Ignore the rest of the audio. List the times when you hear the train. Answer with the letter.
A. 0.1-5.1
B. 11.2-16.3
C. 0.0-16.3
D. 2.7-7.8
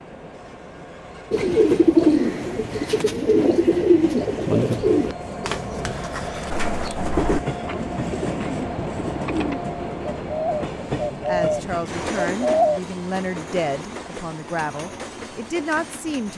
C.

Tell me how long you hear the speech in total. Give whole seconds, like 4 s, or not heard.
5 s.